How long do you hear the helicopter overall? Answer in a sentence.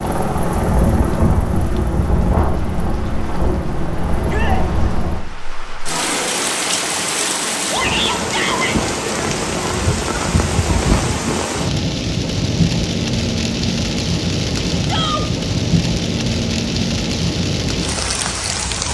The helicopter can be heard for 5 seconds in total.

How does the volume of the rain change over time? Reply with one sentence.
The volume of the rain goes up.